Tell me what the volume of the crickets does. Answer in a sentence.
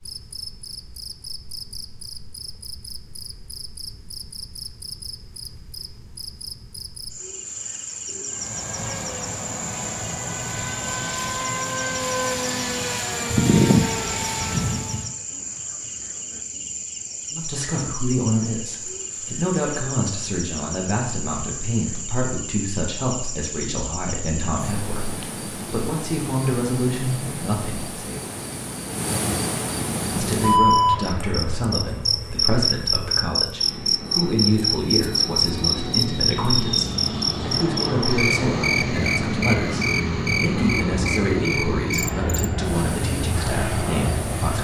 The volume of the crickets goes up.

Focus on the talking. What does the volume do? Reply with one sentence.
The volume of the talking stays about the same.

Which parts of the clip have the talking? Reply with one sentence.
You can hear the talking from 17.3 to 28.2 s and from 30.1 to 44.5 s.